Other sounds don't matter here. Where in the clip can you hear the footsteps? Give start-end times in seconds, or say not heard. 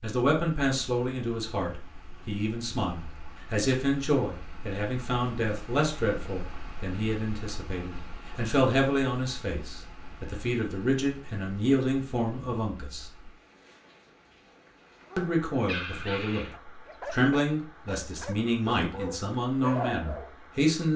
not heard.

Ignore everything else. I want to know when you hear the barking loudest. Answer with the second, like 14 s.
20 s.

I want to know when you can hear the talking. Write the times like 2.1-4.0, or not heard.
0.0-13.1, 15.2-16.4, 17.1-20.9.